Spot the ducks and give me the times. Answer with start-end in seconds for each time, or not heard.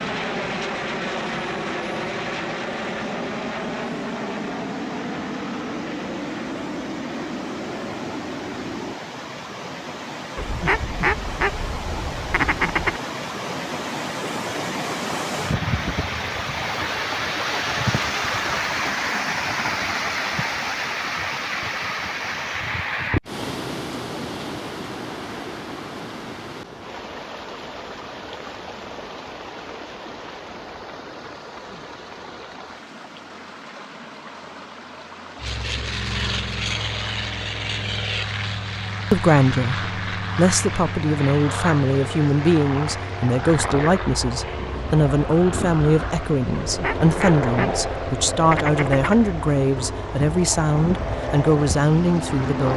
10.3-13.0, 46.6-49.2.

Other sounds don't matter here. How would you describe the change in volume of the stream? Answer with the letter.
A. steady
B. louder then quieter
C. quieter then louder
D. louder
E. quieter
B.